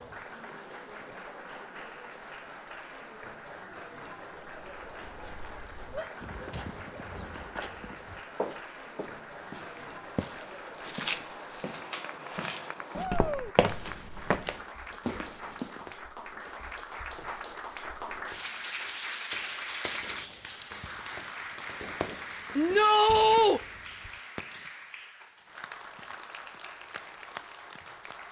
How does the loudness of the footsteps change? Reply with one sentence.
The volume of the footsteps goes up.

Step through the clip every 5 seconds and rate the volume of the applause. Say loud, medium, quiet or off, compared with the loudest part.
medium, medium, medium, loud, loud, medium.